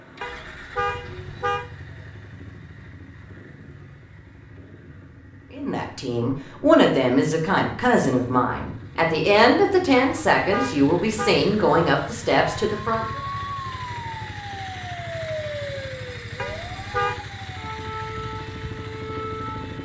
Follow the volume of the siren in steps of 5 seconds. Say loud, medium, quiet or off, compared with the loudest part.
off, off, loud, loud.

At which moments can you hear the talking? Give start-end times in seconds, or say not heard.
5.5-13.2.